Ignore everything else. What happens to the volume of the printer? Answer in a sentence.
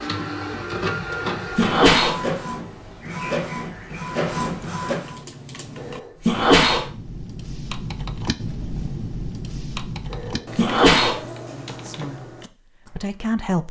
The volume of the printer stays about the same.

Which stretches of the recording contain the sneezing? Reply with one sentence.
The sneezing can be heard from 1.1 to 2.2 s, from 5.8 to 6.8 s and from 10.1 to 11.2 s.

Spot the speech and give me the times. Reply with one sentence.
The speech can be heard from 11.5 to 13.6 s.